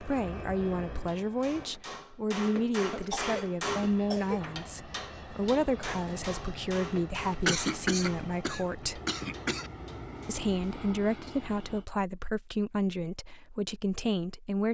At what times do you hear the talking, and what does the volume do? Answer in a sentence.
You can hear the talking from 0.0 to 9.0 s, at a steady volume; and from 10.2 to 14.6 s, at a steady volume.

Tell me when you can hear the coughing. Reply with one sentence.
You can hear the coughing from 2.9 to 4.5 s and from 7.5 to 9.7 s.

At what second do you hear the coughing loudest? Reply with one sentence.
The volume of the coughing peaks at 8 seconds.